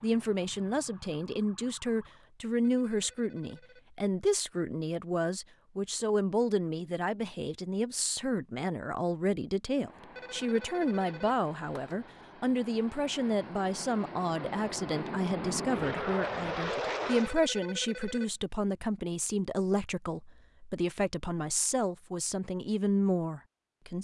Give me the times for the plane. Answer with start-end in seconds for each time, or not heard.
9.7-17.4.